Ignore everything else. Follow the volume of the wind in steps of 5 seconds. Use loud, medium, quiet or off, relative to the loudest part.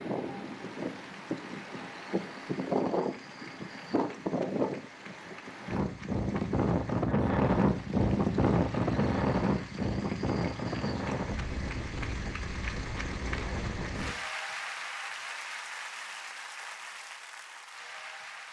medium, loud, medium, off.